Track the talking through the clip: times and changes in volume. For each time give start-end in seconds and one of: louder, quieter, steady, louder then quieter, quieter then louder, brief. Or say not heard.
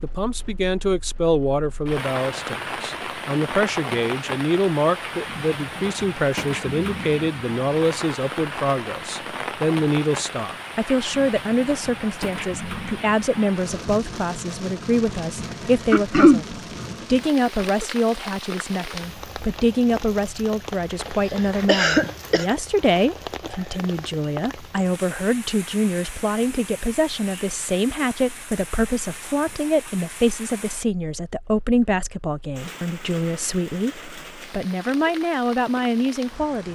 0.0-36.7 steady.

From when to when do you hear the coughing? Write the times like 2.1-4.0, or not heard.
15.9-16.4, 21.2-22.4.